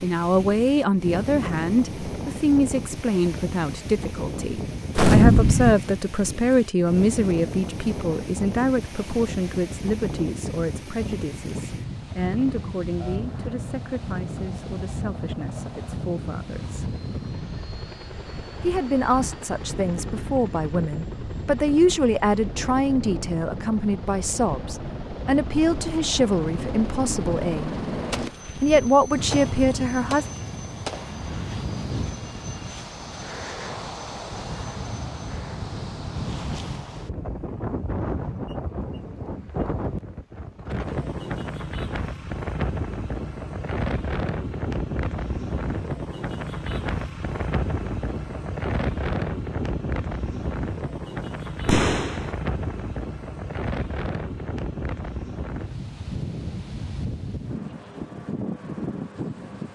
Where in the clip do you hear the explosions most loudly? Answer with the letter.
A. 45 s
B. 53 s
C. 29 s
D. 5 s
D.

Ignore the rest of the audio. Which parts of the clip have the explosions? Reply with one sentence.
The explosions can be heard from 5.0 to 5.8 s, from 28.1 to 31.1 s and from 51.6 to 52.3 s.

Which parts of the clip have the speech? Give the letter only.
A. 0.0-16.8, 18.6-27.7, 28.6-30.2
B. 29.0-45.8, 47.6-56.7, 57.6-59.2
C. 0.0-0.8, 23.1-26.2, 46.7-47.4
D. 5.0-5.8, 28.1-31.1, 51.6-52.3
A.